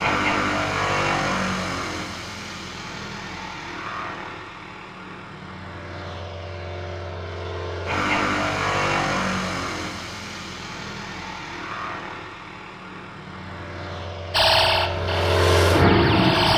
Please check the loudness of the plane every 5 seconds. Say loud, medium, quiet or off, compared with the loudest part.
medium, medium, quiet, loud.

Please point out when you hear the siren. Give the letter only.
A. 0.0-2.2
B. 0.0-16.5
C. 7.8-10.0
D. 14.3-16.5
D.